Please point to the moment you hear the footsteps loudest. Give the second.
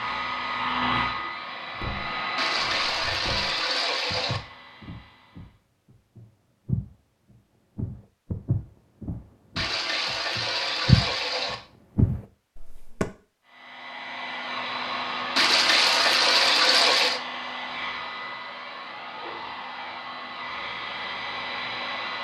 11 s.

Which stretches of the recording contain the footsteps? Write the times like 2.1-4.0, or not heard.
1.8-13.1.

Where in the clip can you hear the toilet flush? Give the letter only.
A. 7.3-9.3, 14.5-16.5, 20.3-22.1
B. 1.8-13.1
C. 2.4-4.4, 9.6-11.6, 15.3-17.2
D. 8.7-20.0
C.